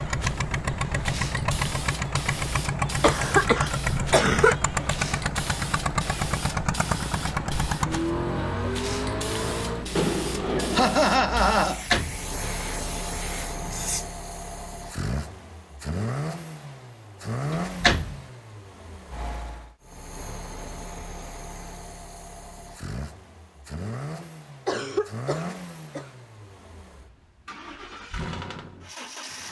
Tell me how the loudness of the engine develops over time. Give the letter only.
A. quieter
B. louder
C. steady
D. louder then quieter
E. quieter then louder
A.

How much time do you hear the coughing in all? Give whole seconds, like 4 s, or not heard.
5 s.